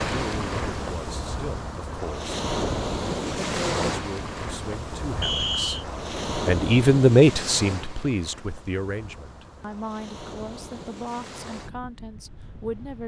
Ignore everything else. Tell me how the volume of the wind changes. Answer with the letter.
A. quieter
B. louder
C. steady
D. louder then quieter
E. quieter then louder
A.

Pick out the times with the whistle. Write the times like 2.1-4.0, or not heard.
5.2-5.8.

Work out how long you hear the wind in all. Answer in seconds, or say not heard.
13 s.